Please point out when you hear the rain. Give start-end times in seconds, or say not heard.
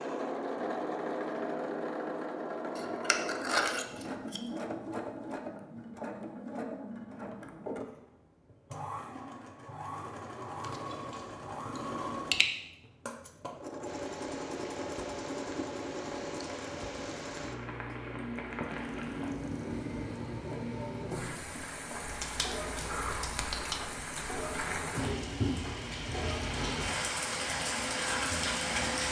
13.8-29.0.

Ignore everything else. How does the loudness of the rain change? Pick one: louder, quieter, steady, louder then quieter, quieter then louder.
louder.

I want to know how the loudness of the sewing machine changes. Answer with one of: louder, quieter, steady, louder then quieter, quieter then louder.
quieter.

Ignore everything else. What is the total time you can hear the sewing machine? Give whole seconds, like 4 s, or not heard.
29 s.